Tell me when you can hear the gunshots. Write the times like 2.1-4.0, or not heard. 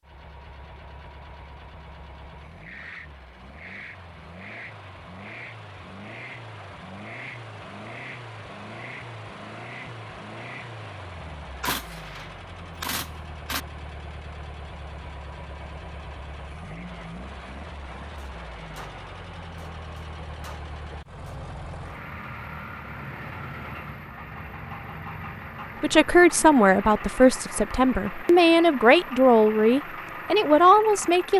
11.6-13.6, 18.1-21.4.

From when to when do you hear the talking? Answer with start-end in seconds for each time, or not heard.
25.8-31.3.